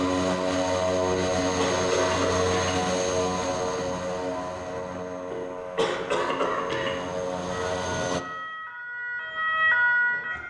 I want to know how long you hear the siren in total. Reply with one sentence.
The siren can be heard for 3 seconds in total.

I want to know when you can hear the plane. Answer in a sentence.
The plane can be heard from 0.0 to 8.2 s.